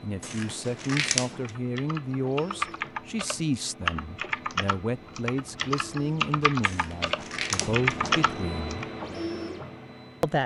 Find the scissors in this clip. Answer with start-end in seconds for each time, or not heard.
0.2-1.6, 6.6-8.2.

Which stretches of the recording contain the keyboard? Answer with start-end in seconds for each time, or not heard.
1.4-8.8.